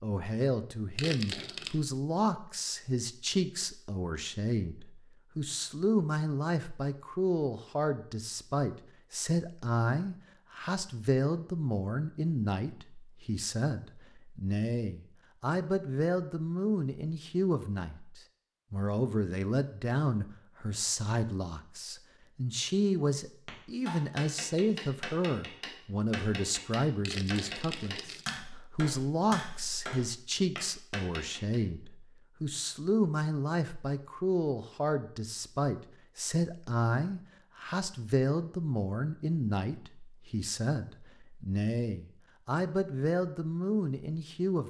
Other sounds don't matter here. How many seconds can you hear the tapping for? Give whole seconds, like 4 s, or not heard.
8 s.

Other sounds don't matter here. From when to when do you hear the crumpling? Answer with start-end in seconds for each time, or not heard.
0.9-1.8, 27.1-28.4.